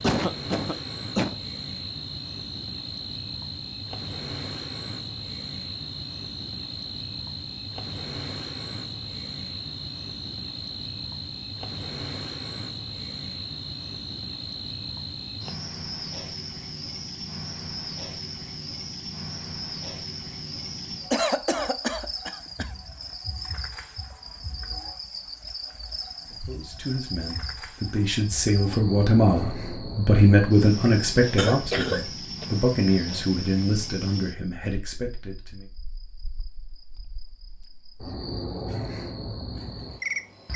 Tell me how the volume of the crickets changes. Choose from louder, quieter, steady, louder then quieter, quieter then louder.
steady.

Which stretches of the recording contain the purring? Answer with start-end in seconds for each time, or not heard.
not heard.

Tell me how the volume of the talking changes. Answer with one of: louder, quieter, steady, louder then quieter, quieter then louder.
louder then quieter.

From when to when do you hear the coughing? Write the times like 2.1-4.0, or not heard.
0.0-1.4, 21.1-22.8, 31.4-32.5.